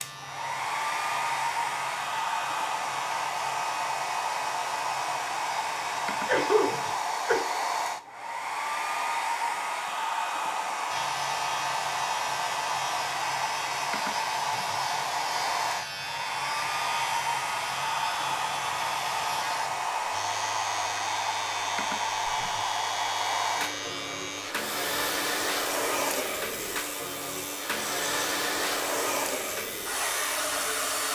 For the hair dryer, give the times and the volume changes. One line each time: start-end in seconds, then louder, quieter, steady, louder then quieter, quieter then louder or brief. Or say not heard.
0.0-31.1 steady.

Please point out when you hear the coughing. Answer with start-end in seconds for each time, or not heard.
6.2-7.5.